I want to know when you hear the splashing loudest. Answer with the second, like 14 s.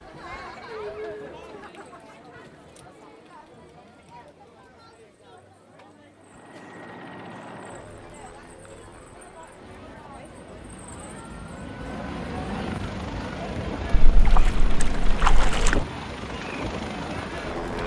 15 s.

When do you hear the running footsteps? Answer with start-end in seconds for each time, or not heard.
not heard.